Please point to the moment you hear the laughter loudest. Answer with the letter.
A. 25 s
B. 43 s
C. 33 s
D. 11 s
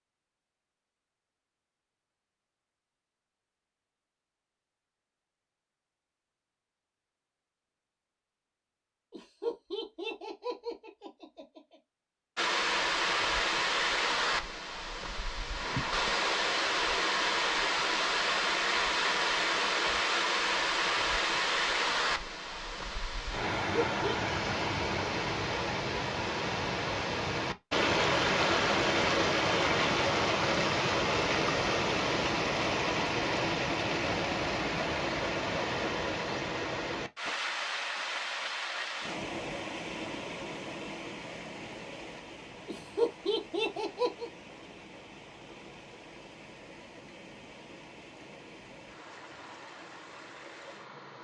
B.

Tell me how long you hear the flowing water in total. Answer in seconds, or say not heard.
39 s.